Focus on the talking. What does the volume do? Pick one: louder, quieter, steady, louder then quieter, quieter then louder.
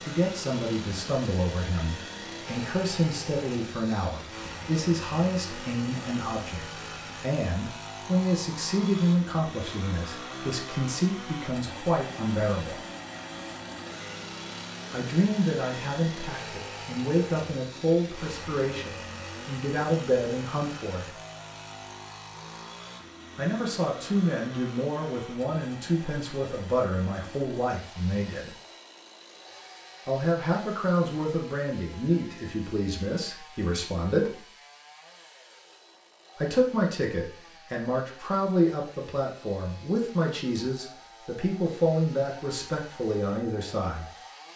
steady.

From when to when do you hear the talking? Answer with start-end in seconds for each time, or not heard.
0.0-12.8, 14.9-21.1, 23.4-28.5, 30.1-34.4, 36.4-44.1.